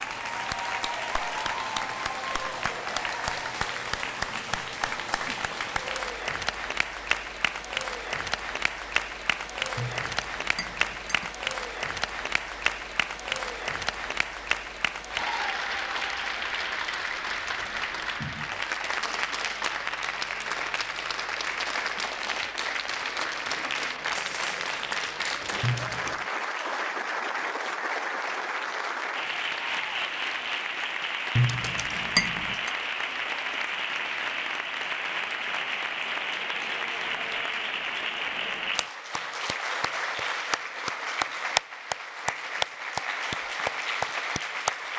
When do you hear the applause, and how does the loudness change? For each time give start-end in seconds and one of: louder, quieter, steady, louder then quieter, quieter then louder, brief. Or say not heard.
0.0-44.9 steady.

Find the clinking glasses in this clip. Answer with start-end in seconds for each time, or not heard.
9.8-11.3, 25.6-26.2, 31.4-32.7.